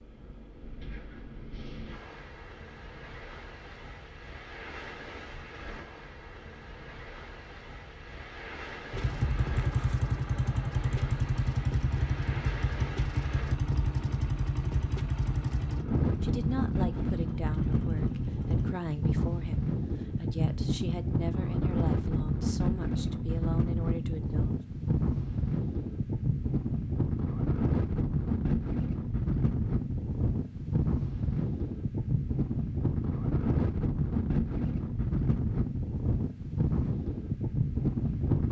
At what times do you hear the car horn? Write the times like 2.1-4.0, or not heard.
not heard.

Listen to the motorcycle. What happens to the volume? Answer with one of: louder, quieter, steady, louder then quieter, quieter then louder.
quieter.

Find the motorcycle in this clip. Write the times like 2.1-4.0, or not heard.
8.9-18.7.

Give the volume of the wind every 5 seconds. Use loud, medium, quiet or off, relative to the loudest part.
quiet, quiet, quiet, loud, loud, loud, loud, loud.